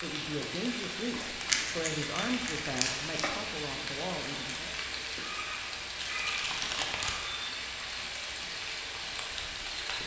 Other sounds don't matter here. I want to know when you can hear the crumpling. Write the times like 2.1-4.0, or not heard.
1.4-3.4, 6.0-7.3.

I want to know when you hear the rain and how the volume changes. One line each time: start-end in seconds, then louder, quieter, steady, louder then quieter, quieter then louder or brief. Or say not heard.
0.0-10.0 steady.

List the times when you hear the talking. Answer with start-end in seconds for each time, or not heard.
0.0-4.8.